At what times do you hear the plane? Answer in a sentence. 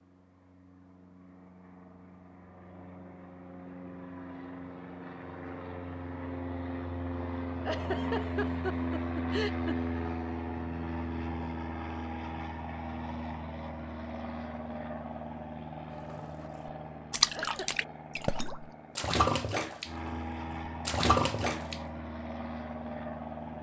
You can hear the plane from 0.1 to 23.5 s.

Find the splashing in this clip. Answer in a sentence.
You can hear the splashing from 16.1 to 20.2 s and from 20.9 to 21.8 s.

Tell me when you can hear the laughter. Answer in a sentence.
The laughter can be heard from 7.5 to 9.8 s and from 17.2 to 17.9 s.